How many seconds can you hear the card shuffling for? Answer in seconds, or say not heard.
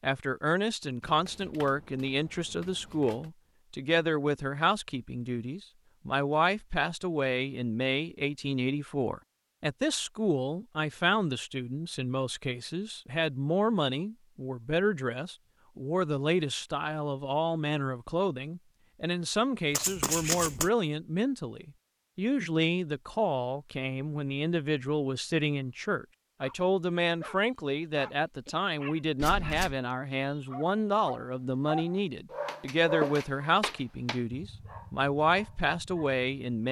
4 s.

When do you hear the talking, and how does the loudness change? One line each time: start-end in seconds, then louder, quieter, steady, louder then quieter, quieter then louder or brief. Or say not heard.
0.0-36.6 steady.